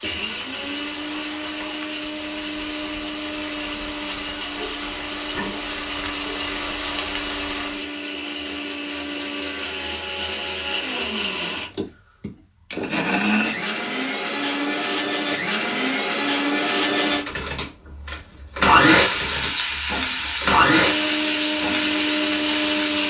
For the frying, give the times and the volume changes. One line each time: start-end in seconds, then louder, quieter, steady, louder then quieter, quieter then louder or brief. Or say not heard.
0.0-7.8 louder
18.9-23.0 steady.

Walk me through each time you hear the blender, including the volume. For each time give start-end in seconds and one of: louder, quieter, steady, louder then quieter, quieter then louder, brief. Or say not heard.
0.0-23.0 louder.